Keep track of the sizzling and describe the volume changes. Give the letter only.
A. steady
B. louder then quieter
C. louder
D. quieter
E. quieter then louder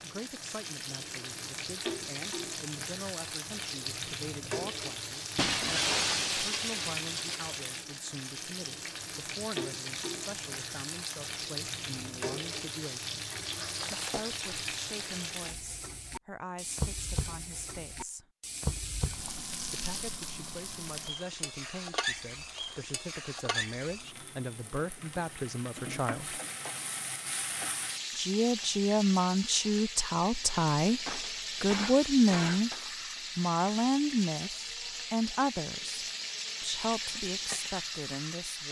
A.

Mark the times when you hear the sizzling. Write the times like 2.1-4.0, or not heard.
0.0-38.6.